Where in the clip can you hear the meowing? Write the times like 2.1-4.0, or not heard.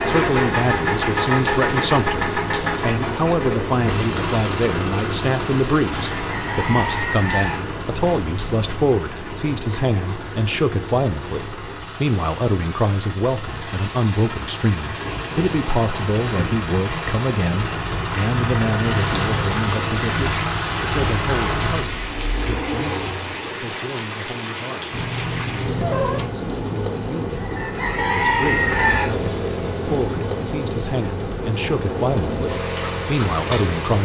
24.9-26.4.